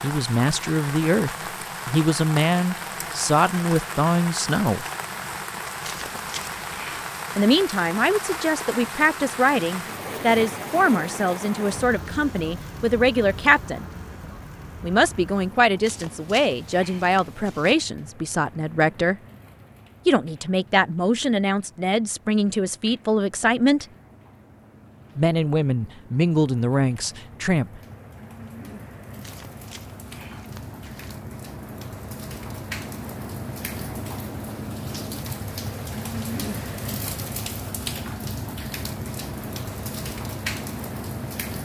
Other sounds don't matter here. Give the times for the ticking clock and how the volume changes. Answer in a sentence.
The ticking clock can't be heard in this clip.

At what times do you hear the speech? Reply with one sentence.
You can hear the speech from 0.0 to 4.8 s, from 7.3 to 13.9 s, from 14.8 to 19.2 s, from 20.1 to 23.9 s and from 25.1 to 27.8 s.